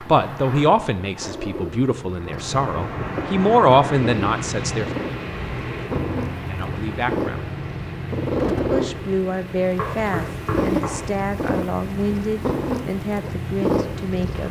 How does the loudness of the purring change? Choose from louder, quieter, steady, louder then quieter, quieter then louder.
louder.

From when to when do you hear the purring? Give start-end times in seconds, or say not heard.
0.0-14.4.